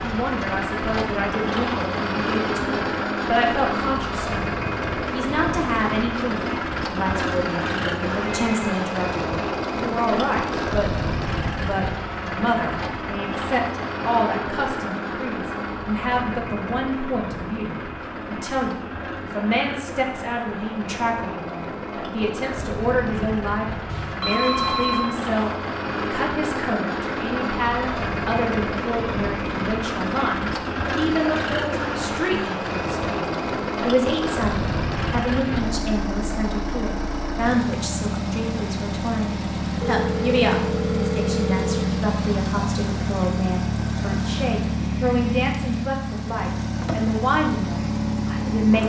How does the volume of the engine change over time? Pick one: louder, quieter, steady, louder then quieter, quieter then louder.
steady.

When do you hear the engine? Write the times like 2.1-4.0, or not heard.
0.0-48.8.